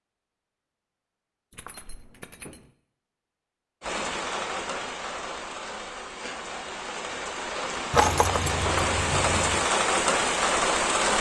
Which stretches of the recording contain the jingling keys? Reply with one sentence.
The jingling keys can be heard from 1.5 to 2.6 s and from 7.9 to 9.6 s.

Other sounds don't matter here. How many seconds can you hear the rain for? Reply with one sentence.
The rain can be heard for 7 seconds in total.